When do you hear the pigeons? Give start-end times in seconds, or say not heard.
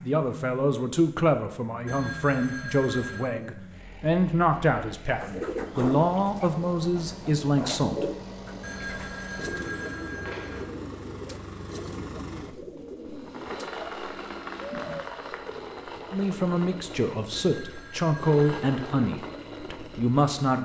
5.2-15.1.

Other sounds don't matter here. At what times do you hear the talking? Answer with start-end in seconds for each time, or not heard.
0.0-8.1, 16.1-20.5.